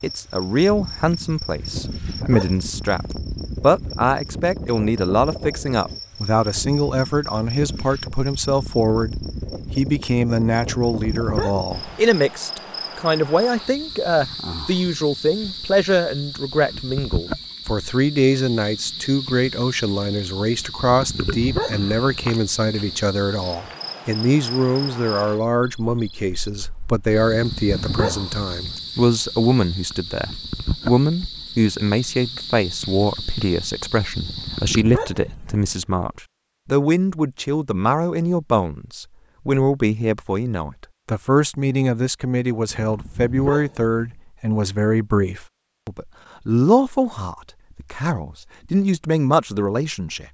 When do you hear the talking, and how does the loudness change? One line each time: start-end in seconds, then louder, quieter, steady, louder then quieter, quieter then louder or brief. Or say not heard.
0.0-50.2 steady.